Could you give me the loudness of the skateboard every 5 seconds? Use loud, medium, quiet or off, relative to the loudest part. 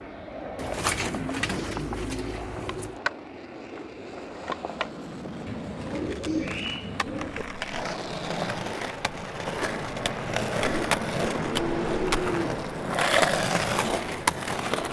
medium, medium, loud.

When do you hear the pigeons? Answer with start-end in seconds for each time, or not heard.
0.6-2.9, 5.5-7.5, 10.6-12.7.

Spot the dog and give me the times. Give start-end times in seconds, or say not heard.
not heard.